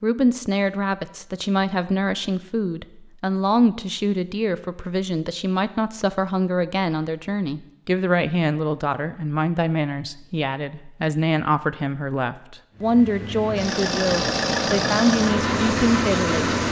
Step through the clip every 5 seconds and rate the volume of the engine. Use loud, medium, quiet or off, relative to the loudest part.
off, off, loud, loud.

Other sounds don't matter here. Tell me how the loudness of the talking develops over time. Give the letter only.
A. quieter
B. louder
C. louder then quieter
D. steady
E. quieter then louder
D.